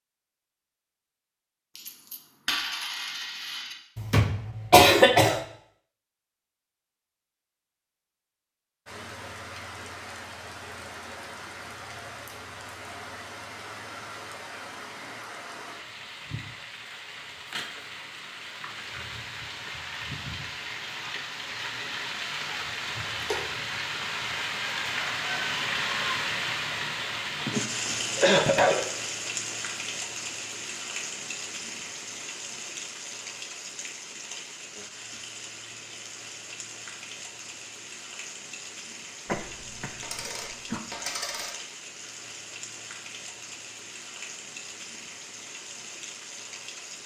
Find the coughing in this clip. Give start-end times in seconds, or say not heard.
4.0-5.4, 27.4-28.9, 39.2-40.8.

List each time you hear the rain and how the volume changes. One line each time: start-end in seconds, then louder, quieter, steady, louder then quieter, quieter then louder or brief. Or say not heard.
8.8-47.0 louder then quieter.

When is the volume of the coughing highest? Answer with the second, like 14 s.
5 s.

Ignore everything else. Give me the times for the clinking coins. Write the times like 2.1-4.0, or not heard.
1.8-3.8, 23.1-23.6, 40.0-41.5.